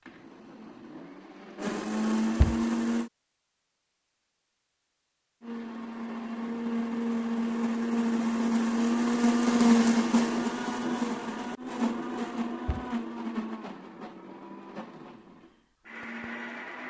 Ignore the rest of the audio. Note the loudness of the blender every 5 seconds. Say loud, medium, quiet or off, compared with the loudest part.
medium, loud, medium, quiet.